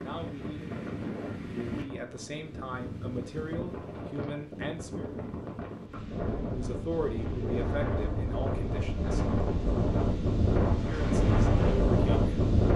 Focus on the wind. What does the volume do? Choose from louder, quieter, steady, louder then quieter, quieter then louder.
louder.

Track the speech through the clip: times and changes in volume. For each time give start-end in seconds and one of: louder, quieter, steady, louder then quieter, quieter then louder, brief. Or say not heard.
0.0-5.2 louder
6.4-9.3 brief
10.8-12.2 brief.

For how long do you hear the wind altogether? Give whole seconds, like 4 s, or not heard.
13 s.